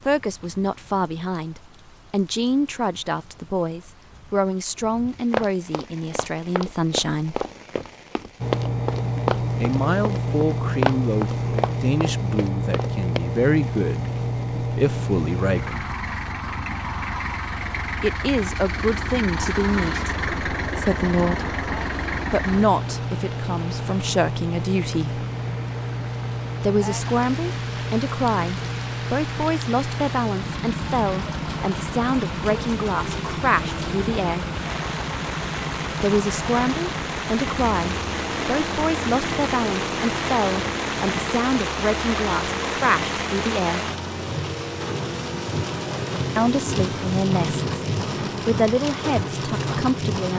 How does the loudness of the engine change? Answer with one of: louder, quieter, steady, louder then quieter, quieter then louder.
quieter.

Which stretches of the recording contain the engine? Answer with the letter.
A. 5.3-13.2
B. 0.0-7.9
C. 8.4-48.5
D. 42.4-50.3
C.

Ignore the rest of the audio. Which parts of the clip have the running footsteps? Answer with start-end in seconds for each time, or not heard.
5.3-13.2.